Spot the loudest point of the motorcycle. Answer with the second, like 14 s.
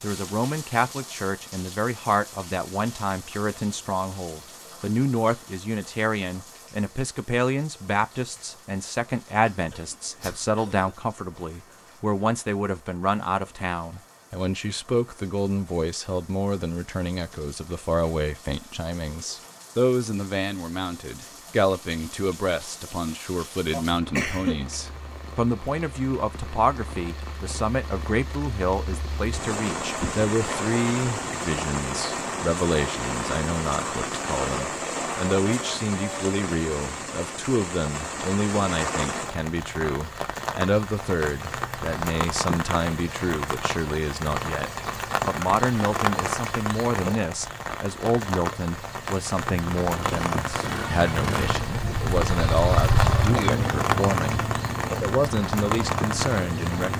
53 s.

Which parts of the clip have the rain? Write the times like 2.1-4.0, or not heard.
0.0-56.9.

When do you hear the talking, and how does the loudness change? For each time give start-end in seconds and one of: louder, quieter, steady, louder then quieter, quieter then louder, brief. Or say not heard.
0.0-56.9 steady.